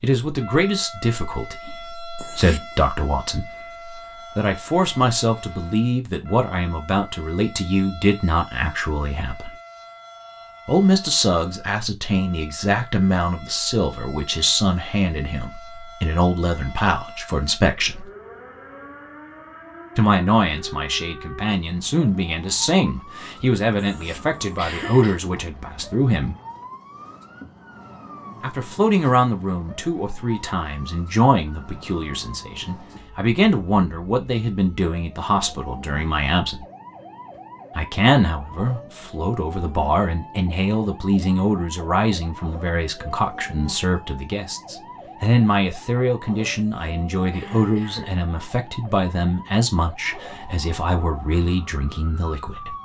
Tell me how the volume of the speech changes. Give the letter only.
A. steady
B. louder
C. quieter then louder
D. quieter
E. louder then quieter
A.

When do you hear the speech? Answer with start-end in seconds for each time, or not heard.
0.0-9.6, 10.7-18.1, 19.9-26.4, 28.4-36.6, 37.8-52.8.